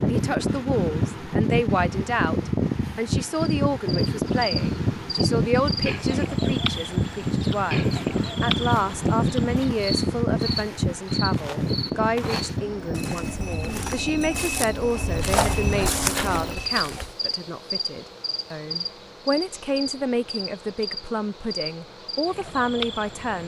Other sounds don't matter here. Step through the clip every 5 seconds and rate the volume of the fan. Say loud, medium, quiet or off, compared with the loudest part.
loud, loud, loud, quiet, quiet.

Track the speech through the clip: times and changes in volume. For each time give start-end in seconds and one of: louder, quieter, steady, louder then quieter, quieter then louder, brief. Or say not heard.
0.0-23.4 steady.